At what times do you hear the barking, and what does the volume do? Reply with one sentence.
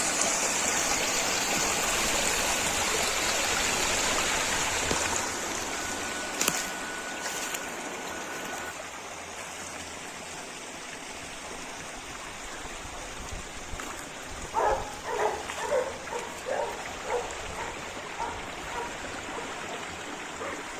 You can hear the barking from 14.5 to 20.6 s, getting quieter.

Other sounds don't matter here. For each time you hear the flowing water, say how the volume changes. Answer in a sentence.
The flowing water can be heard from 0.0 to 20.7 s, getting quieter.